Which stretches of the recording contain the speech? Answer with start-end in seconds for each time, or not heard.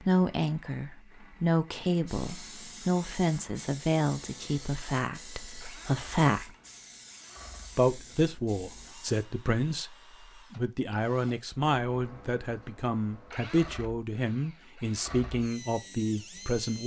0.0-6.5, 7.8-16.8.